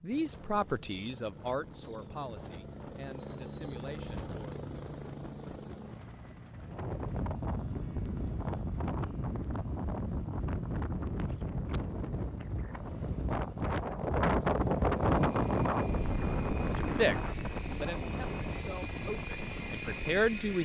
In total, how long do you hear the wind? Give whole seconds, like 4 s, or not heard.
14 s.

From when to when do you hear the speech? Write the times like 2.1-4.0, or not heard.
0.0-4.3, 16.7-20.6.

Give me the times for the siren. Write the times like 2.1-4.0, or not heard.
not heard.